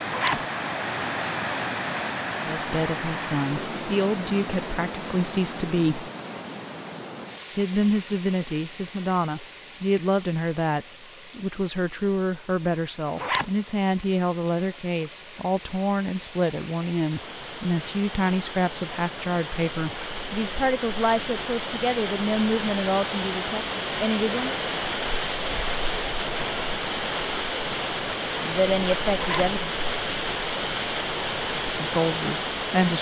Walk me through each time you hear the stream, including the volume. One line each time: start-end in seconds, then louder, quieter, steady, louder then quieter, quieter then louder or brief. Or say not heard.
0.0-32.9 quieter then louder.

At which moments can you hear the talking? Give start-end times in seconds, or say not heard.
2.5-6.1, 7.5-24.6, 28.3-29.8, 31.6-32.9.